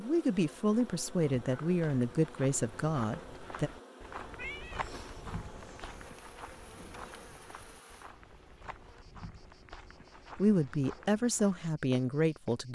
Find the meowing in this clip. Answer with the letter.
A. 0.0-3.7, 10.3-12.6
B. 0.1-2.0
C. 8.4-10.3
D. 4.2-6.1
D.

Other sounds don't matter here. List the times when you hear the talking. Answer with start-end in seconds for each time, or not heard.
0.0-3.7, 10.3-12.6.